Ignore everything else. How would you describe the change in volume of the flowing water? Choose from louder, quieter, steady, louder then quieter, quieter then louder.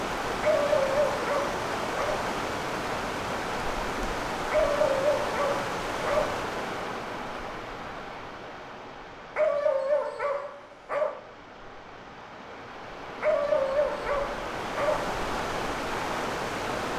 quieter then louder.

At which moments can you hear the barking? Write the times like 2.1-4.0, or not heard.
0.4-2.2, 4.5-6.4, 9.3-11.2, 13.2-15.1.